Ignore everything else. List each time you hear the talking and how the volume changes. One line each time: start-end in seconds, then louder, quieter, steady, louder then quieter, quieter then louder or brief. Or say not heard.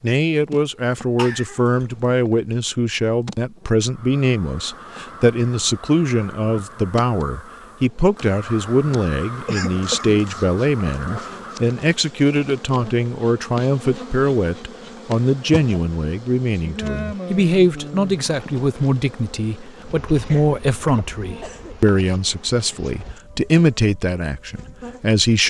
0.0-25.4 steady.